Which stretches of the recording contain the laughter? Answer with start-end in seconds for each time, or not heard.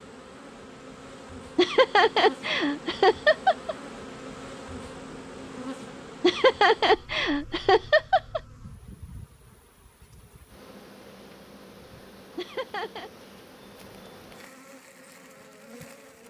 1.6-3.8, 6.2-8.4, 12.3-13.1.